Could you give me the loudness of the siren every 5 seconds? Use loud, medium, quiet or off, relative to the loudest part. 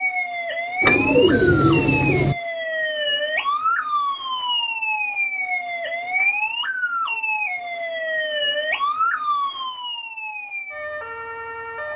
loud, loud, medium.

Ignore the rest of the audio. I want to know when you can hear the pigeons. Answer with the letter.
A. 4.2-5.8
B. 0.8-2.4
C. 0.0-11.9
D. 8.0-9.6
B.